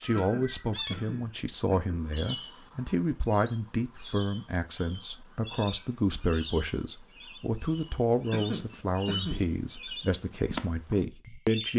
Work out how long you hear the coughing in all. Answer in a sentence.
The coughing can be heard for 3 seconds in total.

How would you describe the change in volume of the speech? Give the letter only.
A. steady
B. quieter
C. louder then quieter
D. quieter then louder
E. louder
A.